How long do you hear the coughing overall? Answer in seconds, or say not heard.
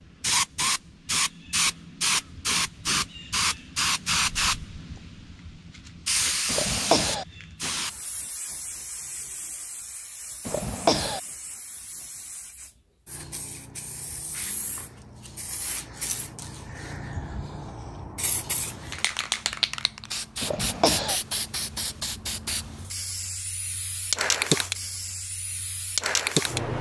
2 s.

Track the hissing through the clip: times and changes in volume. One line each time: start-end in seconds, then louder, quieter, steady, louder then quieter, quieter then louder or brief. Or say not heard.
0.2-26.7 quieter then louder.